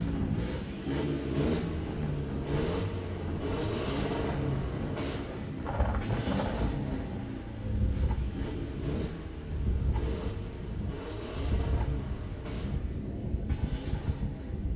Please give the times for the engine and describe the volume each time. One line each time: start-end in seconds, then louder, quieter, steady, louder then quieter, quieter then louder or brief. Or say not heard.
0.0-14.7 quieter.